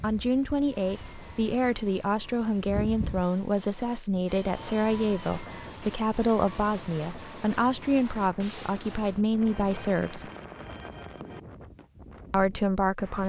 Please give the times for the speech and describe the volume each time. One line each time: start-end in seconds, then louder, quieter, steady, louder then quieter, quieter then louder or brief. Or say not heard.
0.0-10.3 steady
12.3-13.2 brief.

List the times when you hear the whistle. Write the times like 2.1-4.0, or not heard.
not heard.